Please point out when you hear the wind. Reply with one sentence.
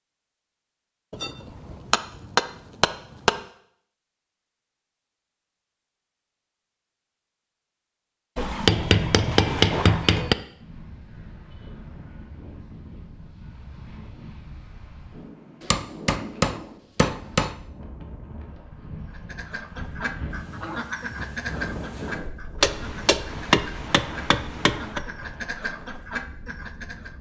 You can hear the wind from 10.5 to 27.1 s.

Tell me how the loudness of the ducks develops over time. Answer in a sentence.
The volume of the ducks goes down, then up.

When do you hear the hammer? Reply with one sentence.
You can hear the hammer from 1.1 to 3.4 s, from 8.3 to 10.3 s, from 15.6 to 17.6 s and from 22.6 to 25.0 s.